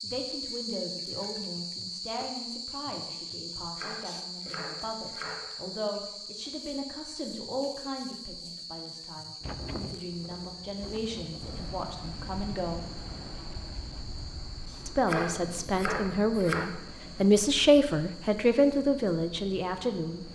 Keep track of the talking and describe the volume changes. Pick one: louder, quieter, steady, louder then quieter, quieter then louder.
louder.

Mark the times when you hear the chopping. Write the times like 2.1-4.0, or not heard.
3.8-5.5, 15.1-16.8.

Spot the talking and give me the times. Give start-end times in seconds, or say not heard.
0.0-12.8, 14.8-20.3.